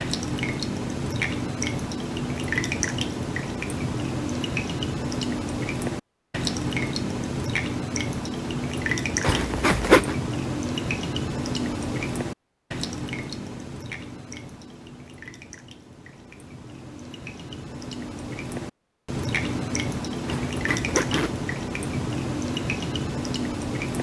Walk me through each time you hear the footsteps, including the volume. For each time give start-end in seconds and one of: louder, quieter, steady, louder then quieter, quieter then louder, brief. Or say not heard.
not heard.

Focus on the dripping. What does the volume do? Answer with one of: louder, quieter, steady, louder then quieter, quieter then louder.
quieter then louder.